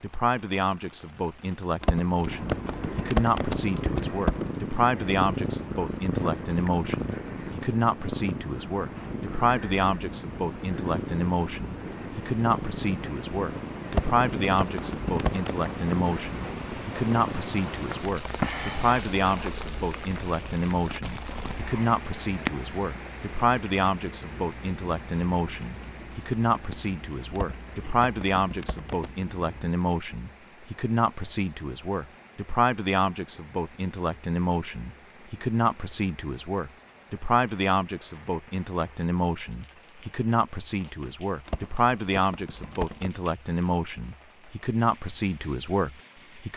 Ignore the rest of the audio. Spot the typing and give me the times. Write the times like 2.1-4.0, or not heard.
1.8-4.5, 13.9-15.6, 27.4-29.1, 41.5-43.1.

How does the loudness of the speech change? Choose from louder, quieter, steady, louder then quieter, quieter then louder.
steady.